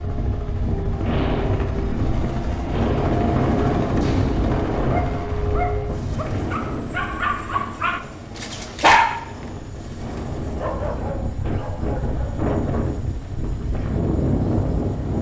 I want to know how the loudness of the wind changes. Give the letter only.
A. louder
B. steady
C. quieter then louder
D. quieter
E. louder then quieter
C.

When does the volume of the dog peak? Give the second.
9 s.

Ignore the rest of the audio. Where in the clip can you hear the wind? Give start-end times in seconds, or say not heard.
0.0-15.1.